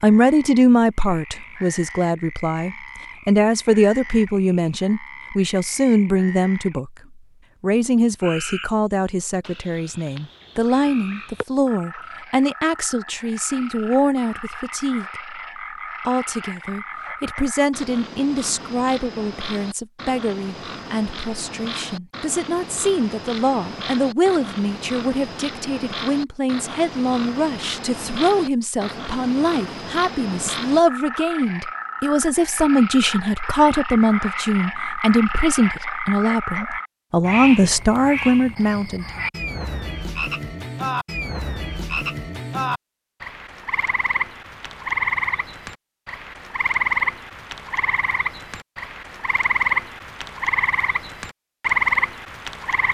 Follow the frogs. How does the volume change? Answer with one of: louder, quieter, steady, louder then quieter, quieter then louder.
louder.